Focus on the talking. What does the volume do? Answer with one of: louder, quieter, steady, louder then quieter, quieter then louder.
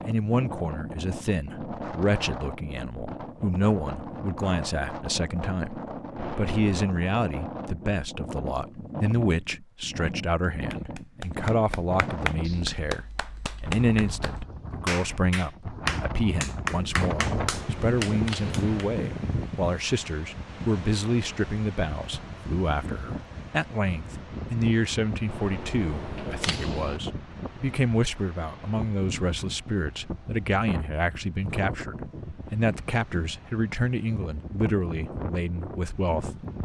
steady.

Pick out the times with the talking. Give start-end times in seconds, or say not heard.
0.0-36.5.